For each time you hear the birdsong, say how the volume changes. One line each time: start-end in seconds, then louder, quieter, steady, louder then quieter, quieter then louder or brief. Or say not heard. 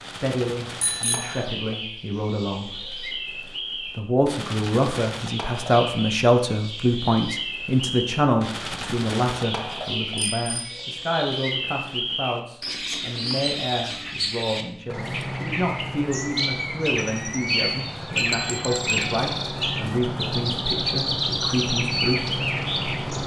0.0-23.2 louder.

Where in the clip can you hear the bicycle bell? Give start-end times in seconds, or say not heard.
0.8-1.4, 10.2-10.8, 18.1-19.1.